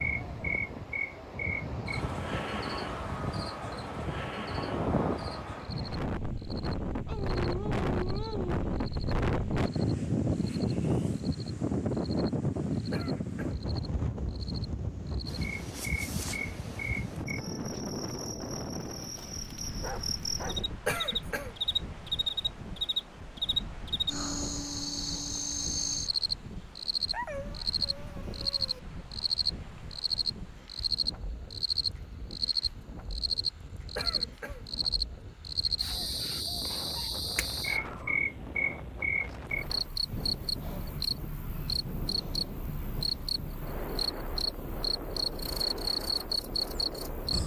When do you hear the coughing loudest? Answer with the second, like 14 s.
21 s.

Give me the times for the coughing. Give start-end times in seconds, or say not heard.
12.9-13.6, 20.9-21.6, 34.0-34.6.